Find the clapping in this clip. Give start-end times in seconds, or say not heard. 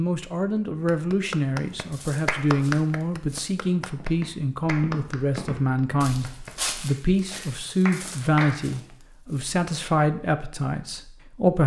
0.8-8.7.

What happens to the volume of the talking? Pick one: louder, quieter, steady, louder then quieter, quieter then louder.
steady.